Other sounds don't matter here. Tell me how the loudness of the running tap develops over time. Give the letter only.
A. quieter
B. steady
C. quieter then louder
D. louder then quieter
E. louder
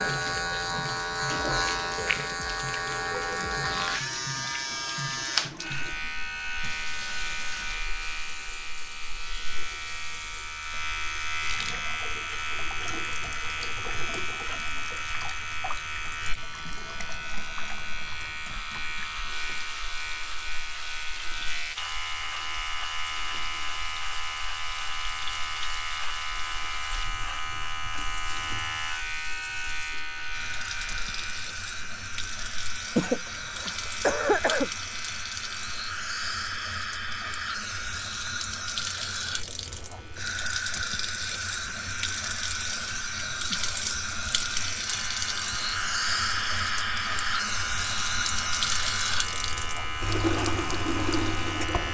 E.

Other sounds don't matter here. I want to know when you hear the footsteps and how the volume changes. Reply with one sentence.
The footsteps can't be heard in this clip.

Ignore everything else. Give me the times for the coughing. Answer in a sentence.
You can hear the coughing from 33.0 to 34.7 s.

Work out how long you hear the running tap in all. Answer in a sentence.
You can hear the running tap for 52 seconds altogether.